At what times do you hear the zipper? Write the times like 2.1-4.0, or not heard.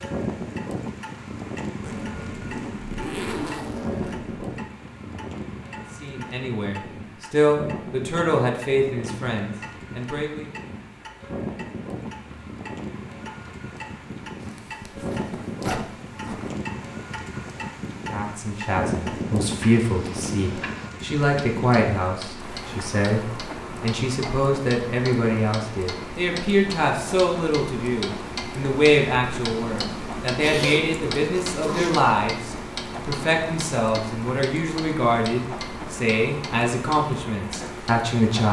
1.8-4.3, 14.4-16.6, 30.4-32.1.